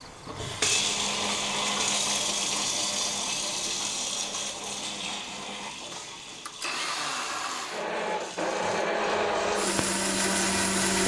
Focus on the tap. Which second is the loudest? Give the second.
1 s.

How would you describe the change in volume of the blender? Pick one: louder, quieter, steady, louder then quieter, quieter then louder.
quieter then louder.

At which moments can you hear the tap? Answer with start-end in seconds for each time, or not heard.
0.0-11.0.